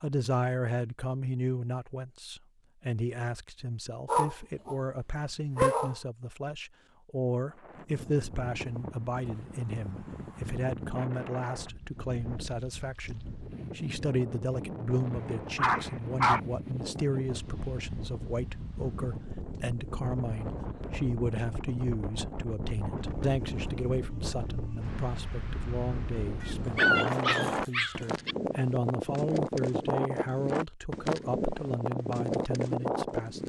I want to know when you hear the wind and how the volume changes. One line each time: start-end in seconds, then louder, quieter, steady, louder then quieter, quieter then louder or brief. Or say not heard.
7.5-33.4 louder.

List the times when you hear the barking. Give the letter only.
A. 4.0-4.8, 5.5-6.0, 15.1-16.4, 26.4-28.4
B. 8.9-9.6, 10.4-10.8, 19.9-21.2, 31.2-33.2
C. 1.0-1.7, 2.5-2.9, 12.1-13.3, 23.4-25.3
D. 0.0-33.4
A.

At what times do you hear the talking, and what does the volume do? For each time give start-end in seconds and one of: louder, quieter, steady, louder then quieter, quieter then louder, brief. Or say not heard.
0.0-33.4 steady.